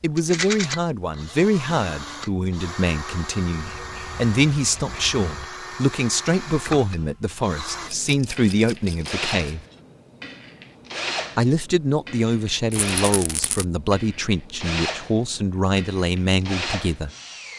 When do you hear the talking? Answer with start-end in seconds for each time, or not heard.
0.0-9.6, 11.3-17.1.